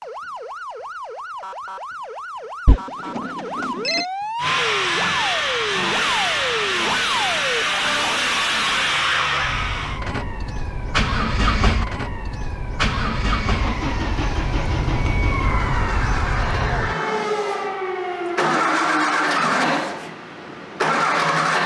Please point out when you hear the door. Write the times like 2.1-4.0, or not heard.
not heard.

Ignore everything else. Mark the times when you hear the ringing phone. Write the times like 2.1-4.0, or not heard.
2.6-4.0.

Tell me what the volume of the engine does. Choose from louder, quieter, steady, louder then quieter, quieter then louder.
quieter then louder.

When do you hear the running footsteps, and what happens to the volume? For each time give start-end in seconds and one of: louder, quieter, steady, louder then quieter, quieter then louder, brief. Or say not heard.
not heard.